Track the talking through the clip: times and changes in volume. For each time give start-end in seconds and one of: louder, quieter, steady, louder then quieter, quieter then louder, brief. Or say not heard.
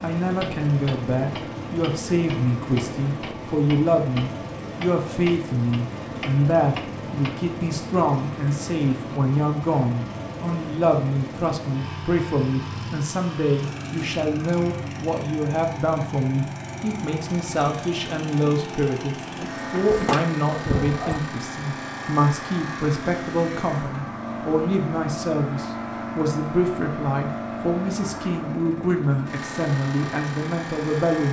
0.0-31.2 steady.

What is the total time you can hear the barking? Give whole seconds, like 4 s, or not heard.
2 s.